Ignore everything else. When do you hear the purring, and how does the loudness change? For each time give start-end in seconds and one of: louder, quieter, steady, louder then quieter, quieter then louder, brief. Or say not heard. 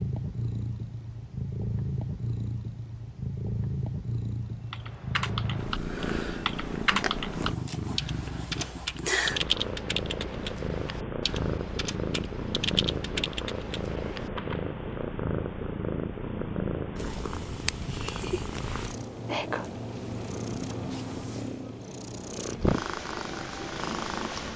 0.0-24.5 steady.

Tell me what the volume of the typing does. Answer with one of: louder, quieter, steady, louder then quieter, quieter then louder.
quieter then louder.